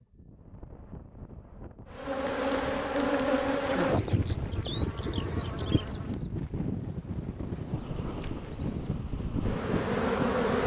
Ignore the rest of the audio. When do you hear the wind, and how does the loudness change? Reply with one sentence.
You can hear the wind from 0.0 to 10.6 s, getting louder.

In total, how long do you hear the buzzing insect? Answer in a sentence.
The buzzing insect can be heard for 7 seconds in total.